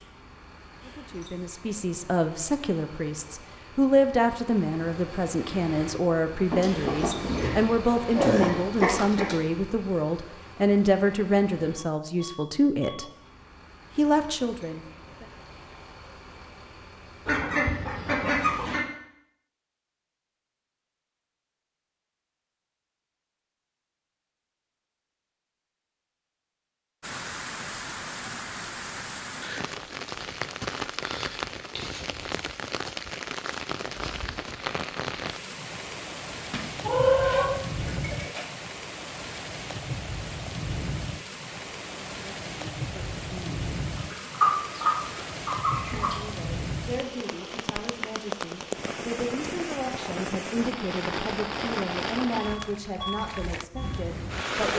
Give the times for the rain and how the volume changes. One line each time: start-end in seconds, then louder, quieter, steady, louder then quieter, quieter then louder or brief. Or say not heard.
27.0-54.7 steady.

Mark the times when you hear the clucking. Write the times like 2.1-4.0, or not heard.
6.5-9.3, 17.2-18.9, 36.5-38.5, 44.0-46.1.